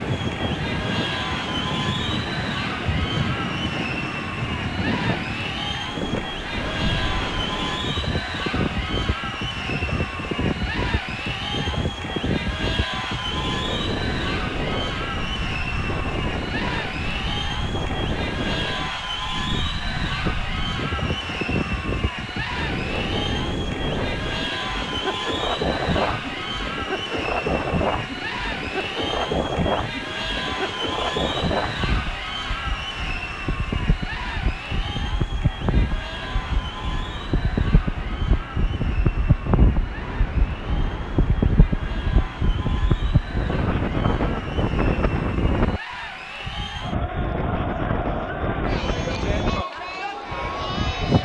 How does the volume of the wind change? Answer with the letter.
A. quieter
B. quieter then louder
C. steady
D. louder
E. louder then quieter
C.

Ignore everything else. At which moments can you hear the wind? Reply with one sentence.
You can hear the wind from 0.0 to 51.1 s.